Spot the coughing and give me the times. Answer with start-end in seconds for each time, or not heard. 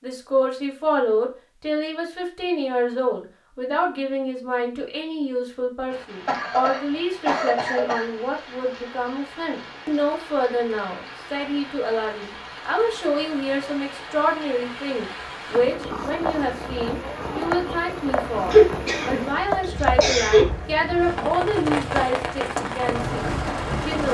6.2-8.1, 18.5-20.4.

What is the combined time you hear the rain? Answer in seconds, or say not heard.
18 s.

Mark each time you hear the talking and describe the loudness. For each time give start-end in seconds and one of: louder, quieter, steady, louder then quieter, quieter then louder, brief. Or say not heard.
0.0-24.0 steady.